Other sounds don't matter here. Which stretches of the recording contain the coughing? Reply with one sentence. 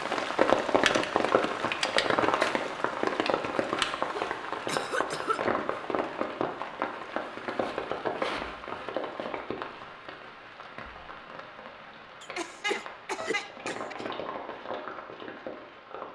You can hear the coughing from 4.1 to 5.5 s and from 12.2 to 14.1 s.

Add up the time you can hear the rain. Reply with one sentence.
The rain can be heard for 16 seconds in total.